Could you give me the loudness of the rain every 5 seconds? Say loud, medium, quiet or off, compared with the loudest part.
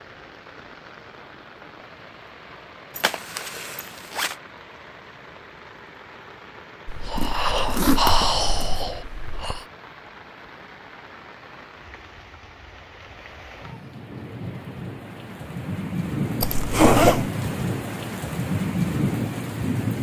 quiet, quiet, quiet, loud.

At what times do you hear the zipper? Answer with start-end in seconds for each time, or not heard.
3.0-4.3, 7.2-8.9, 16.4-17.3.